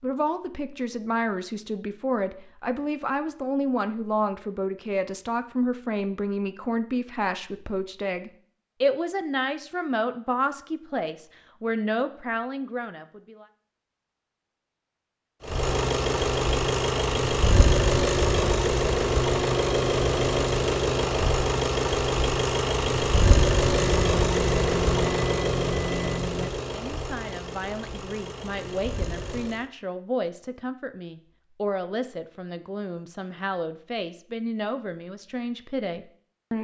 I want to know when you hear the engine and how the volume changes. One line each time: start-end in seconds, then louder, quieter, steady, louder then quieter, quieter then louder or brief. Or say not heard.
15.4-29.7 quieter.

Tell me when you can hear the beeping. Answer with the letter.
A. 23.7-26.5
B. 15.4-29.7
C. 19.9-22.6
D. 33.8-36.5
A.